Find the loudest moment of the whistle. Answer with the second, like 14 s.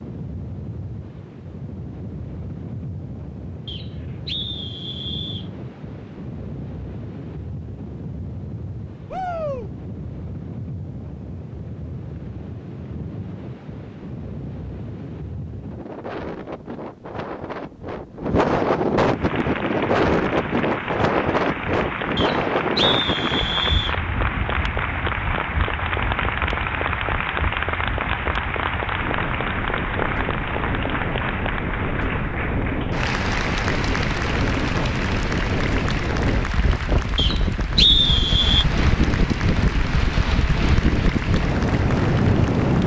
38 s.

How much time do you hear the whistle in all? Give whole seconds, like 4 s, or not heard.
5 s.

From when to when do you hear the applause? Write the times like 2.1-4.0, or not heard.
19.1-42.8.